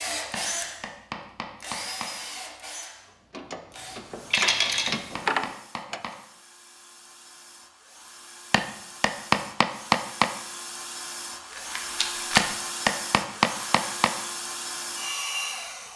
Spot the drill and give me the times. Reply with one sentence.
You can hear the drill from 0.0 to 15.9 s.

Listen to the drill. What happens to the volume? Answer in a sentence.
The volume of the drill goes down, then up.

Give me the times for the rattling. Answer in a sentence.
You can hear the rattling from 4.3 to 5.0 s and from 11.6 to 12.4 s.